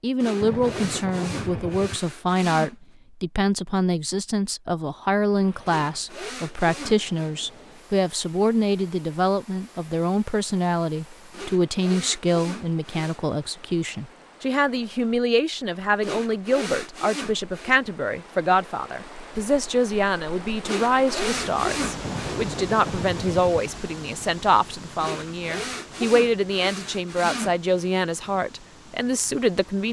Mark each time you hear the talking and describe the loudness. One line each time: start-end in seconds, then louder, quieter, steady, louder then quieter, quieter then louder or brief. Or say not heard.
0.0-29.8 steady.